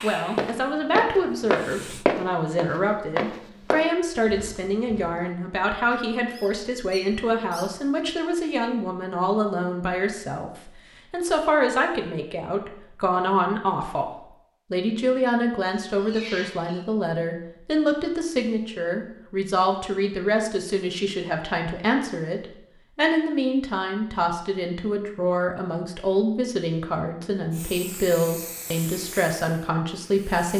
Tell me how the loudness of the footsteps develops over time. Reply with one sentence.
The volume of the footsteps goes down.